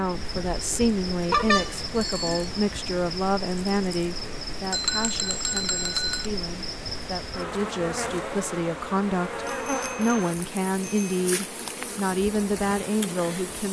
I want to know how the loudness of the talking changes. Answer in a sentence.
The loudness of the talking goes down, then up.